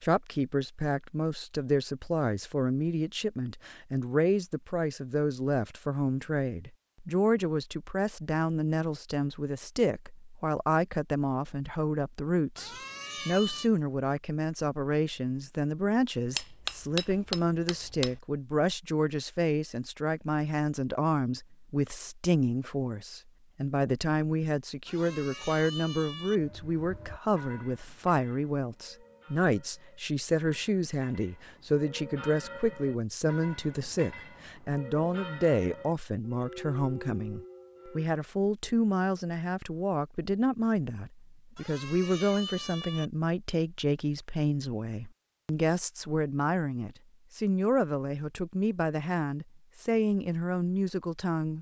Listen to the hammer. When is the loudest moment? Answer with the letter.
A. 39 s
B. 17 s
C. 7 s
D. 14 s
B.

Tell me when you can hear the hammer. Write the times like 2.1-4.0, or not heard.
16.4-18.2.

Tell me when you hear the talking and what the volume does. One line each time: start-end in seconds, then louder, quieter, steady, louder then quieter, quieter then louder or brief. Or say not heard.
0.0-51.5 steady.